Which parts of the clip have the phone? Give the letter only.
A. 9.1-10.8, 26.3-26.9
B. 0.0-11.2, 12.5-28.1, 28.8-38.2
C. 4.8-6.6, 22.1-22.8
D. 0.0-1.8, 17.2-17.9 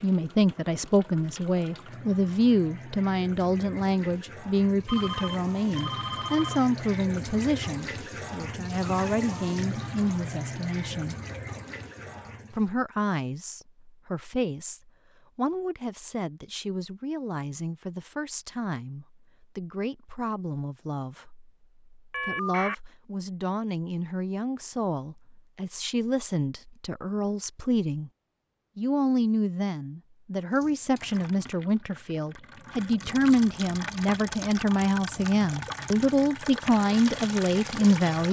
C.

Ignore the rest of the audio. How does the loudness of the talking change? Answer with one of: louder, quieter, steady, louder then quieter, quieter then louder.
quieter then louder.